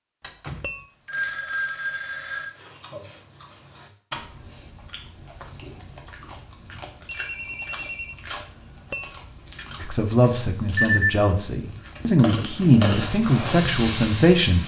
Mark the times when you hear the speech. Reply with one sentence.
You can hear the speech from 9.8 to 14.6 s.